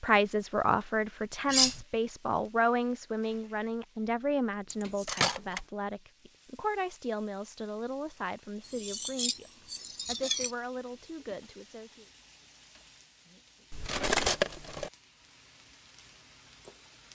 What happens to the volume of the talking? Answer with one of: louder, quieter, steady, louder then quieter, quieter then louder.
quieter.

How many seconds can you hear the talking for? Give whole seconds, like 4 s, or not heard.
12 s.